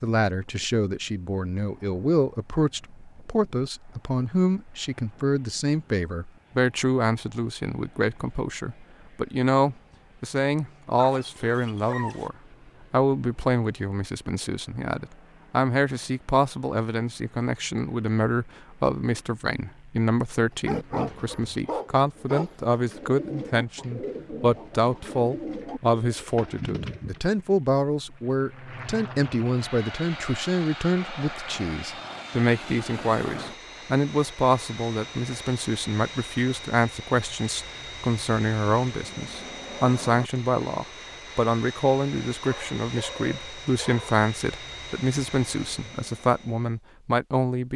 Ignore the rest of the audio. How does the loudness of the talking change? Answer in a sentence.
The loudness of the talking stays about the same.